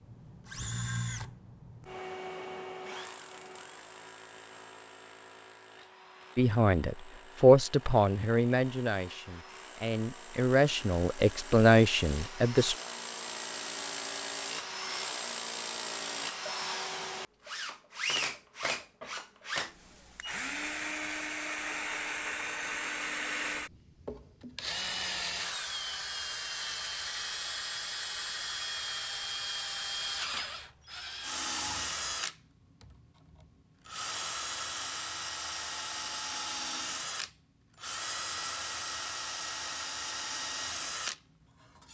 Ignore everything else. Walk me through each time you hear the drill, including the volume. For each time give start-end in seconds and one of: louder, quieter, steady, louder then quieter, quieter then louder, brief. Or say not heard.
0.0-41.8 louder.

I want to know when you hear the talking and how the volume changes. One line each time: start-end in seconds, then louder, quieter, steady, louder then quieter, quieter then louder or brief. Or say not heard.
6.3-12.8 quieter then louder.